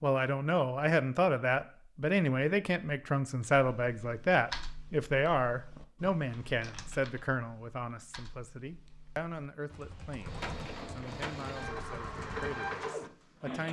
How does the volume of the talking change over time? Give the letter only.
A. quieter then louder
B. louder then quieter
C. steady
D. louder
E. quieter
E.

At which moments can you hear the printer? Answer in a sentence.
You can hear the printer from 10.2 to 13.6 s.